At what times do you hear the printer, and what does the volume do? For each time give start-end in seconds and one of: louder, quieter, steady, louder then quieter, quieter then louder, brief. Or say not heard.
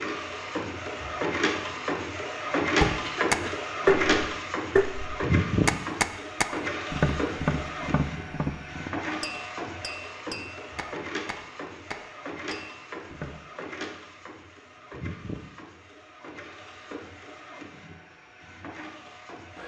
0.0-19.6 quieter.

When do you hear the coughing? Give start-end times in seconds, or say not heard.
3.0-3.6.